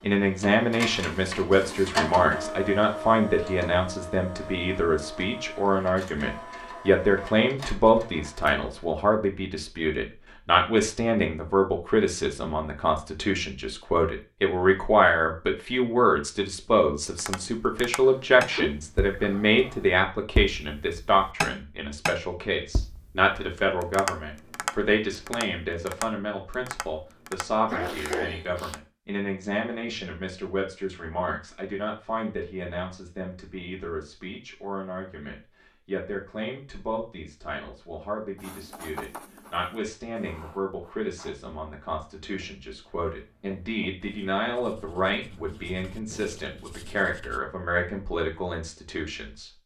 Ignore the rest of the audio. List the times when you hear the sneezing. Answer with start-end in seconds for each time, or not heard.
18.0-19.9, 27.6-28.8.